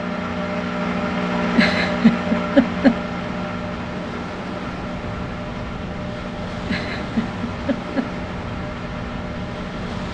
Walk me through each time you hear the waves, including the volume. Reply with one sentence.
The waves can be heard from 2.9 to 10.1 s, at a steady volume.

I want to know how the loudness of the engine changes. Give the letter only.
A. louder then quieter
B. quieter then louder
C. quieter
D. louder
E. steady
C.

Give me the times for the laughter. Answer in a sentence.
You can hear the laughter from 1.5 to 3.0 s and from 6.7 to 8.1 s.